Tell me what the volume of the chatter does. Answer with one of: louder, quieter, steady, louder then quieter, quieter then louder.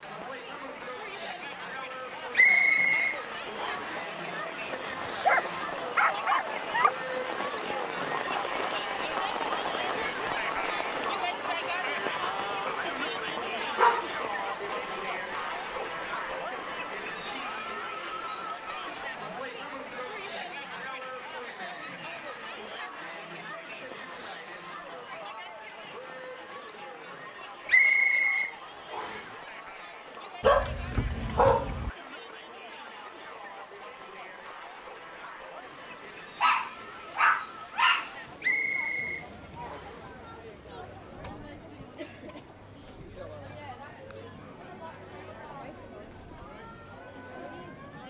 quieter.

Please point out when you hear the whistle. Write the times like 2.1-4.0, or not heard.
2.4-4.0, 27.6-29.2, 38.4-40.0.